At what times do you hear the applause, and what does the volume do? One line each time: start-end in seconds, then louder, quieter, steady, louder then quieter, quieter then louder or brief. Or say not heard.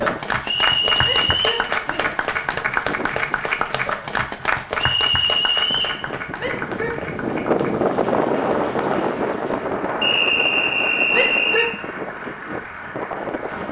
0.0-13.6 quieter.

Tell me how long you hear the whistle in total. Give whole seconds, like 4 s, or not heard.
4 s.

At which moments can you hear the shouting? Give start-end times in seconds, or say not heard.
1.0-2.1, 6.3-7.0, 11.1-11.7.